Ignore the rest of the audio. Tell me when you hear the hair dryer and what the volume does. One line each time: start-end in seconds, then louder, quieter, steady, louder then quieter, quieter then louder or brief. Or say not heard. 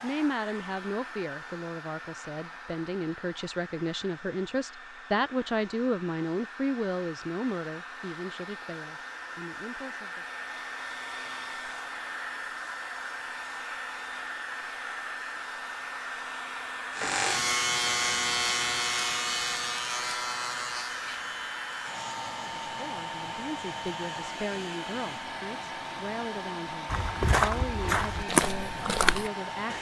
0.0-29.7 louder.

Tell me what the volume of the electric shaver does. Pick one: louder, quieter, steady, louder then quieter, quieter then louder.
quieter.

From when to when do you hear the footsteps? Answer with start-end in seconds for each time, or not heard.
26.9-29.7.